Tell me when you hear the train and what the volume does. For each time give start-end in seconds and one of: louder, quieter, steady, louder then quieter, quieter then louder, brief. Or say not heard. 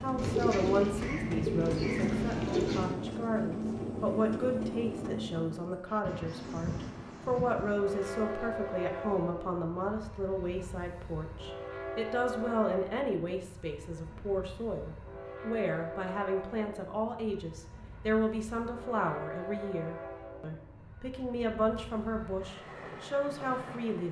0.0-24.0 quieter.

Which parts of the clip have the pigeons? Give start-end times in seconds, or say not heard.
0.1-3.0.